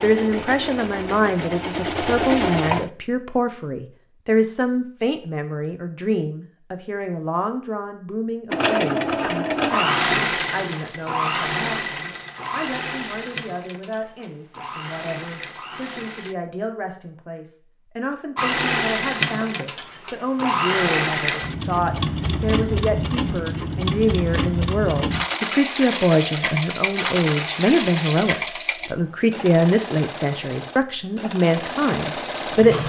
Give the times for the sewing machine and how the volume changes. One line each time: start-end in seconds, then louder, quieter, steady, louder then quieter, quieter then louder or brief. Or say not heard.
0.0-2.9 brief
8.5-16.4 quieter
18.4-32.8 quieter.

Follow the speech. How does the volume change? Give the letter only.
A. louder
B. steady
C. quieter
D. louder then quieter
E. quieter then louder
E.